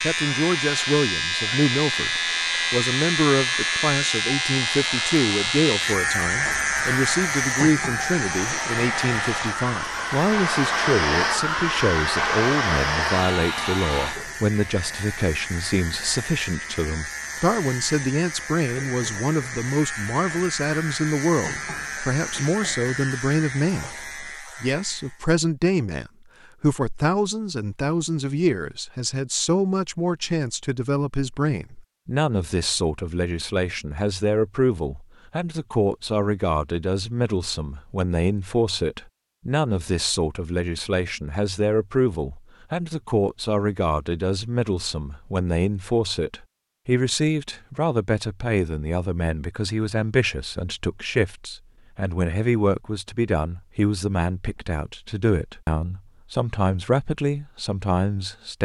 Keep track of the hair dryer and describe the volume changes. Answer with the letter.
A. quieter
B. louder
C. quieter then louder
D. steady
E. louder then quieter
B.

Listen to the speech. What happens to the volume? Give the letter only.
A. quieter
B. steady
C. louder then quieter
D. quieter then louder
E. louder
B.